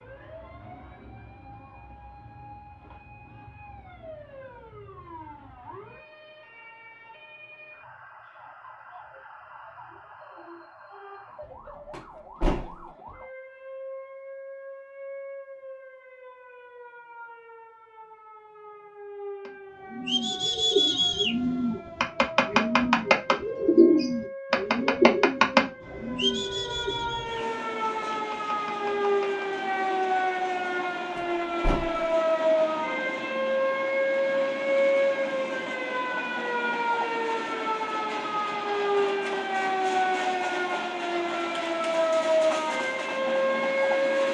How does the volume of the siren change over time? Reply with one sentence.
The volume of the siren goes up.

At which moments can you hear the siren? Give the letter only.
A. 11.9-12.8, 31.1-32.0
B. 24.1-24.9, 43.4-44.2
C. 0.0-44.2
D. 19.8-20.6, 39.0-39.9
C.